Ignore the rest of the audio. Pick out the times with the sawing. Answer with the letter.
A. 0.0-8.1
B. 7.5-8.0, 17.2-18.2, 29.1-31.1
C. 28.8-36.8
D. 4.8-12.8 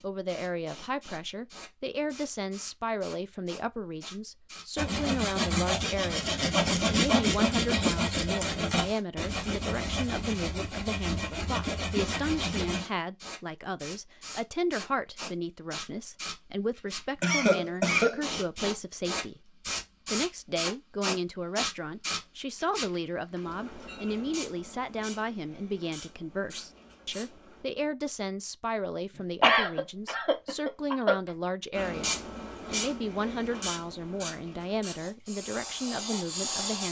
D.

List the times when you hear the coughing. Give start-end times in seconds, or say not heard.
7.5-8.0, 17.2-18.2, 29.1-31.1.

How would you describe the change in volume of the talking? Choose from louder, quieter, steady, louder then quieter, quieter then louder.
steady.